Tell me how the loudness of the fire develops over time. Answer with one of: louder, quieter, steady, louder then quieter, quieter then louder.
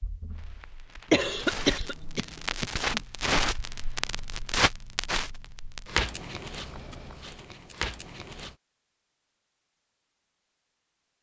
louder then quieter.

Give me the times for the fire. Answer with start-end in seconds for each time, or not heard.
0.0-8.6.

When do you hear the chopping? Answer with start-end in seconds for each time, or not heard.
not heard.